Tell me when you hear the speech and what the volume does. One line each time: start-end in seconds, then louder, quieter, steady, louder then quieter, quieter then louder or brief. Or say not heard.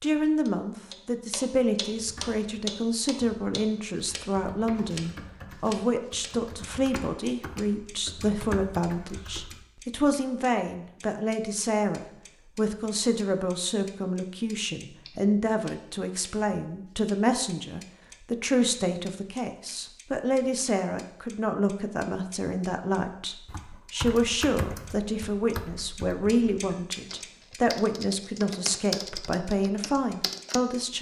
0.0-30.9 steady.